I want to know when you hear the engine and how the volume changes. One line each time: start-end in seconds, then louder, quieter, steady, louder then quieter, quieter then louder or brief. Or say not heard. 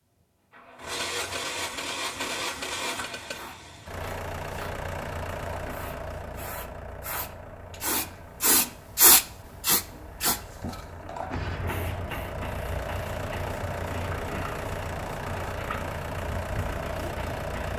0.0-17.7 quieter then louder.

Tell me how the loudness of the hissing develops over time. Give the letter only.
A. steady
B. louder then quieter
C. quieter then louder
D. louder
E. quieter
B.